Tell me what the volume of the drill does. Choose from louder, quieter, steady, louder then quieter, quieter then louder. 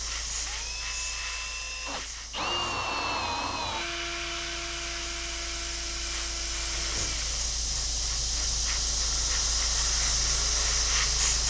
quieter.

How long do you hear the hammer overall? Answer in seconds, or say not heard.
not heard.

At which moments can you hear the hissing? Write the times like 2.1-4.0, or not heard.
0.0-11.4.